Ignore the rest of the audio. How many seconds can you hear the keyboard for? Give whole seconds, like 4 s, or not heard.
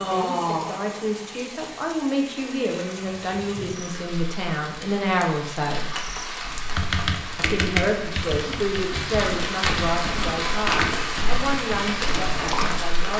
6 s.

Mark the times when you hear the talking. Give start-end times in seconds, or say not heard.
0.0-5.9, 7.3-13.1.